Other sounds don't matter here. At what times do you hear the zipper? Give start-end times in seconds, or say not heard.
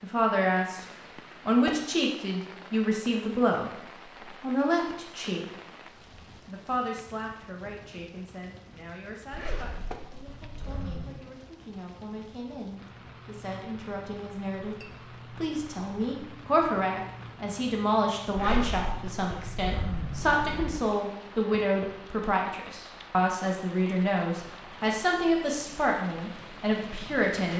9.3-11.1, 18.4-20.9.